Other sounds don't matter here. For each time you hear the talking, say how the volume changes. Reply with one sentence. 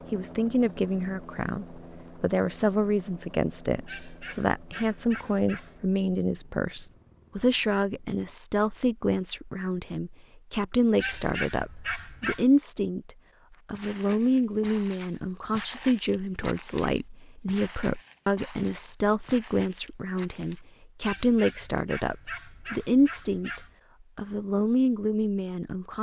The talking can be heard from 0.1 to 25.9 s, at a steady volume.